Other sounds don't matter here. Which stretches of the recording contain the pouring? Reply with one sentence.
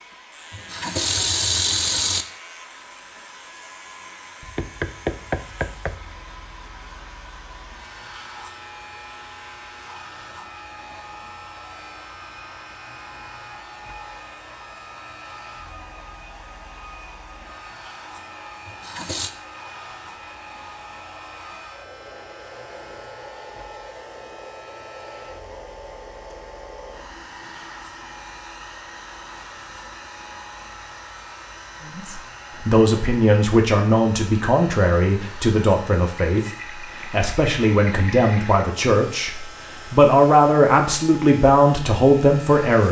You can hear the pouring from 0.5 to 2.2 s, from 18.6 to 19.3 s and from 36.4 to 38.7 s.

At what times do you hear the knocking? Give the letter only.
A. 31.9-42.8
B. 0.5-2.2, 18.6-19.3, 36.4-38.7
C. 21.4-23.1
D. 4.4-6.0
D.